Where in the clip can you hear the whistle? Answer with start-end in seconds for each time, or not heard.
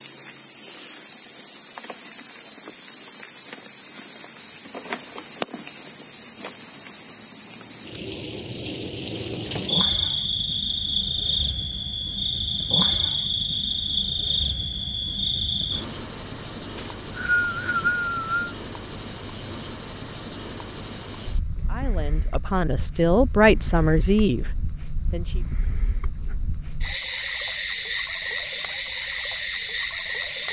16.8-18.6.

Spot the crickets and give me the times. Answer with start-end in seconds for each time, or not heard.
0.0-30.4.